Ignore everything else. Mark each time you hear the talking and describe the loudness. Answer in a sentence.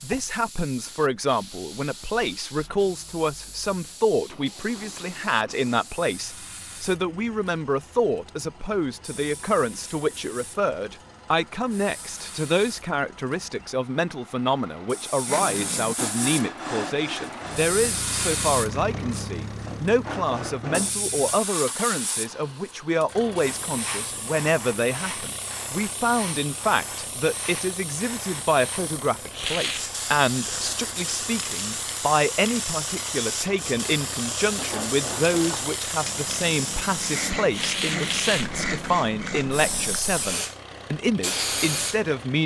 The talking can be heard from 0.0 to 42.4 s, at a steady volume.